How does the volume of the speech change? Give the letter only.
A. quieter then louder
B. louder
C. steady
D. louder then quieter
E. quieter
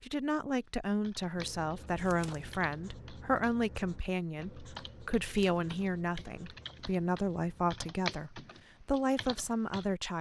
C.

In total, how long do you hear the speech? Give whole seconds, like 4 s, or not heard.
10 s.